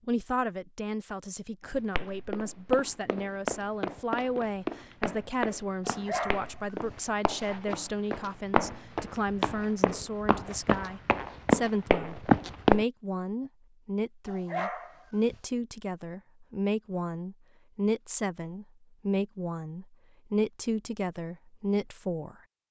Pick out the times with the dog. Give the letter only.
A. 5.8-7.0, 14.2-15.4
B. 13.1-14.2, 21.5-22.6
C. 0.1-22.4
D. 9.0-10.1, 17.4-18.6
A.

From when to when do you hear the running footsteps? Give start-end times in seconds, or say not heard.
1.6-12.8.